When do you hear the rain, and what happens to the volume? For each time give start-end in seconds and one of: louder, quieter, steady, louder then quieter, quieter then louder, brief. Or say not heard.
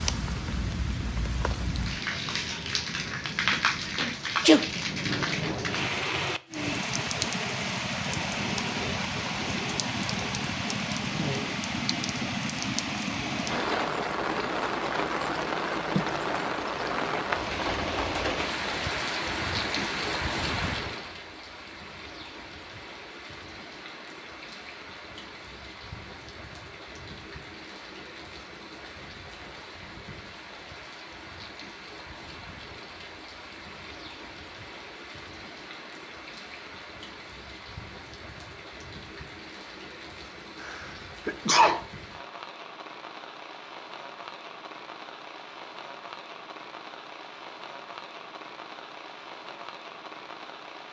0.0-50.8 quieter.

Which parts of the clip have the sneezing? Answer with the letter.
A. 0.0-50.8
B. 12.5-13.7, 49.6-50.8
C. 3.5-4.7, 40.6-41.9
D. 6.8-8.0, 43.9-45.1
C.